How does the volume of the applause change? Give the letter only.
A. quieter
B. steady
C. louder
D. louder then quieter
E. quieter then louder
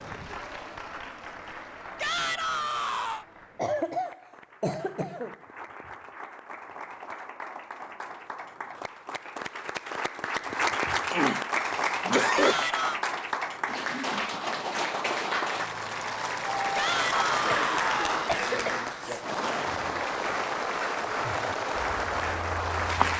C.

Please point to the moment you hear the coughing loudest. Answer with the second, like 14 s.
12 s.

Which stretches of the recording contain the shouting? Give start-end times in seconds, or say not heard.
1.9-3.2, 12.3-13.0, 16.8-18.4.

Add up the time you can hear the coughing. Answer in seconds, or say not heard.
5 s.